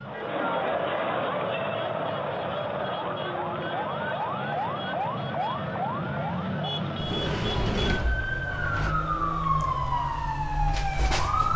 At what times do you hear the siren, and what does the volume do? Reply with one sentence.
The siren can be heard from 0.0 to 11.5 s, getting louder.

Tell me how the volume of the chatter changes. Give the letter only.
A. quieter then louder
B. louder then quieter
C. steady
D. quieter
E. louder
D.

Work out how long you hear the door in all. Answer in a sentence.
You can hear the door for 2 seconds altogether.